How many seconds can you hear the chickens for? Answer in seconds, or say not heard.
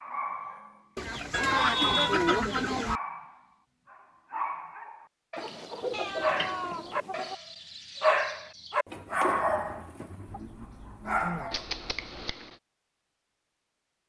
6 s.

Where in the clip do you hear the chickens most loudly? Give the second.
2 s.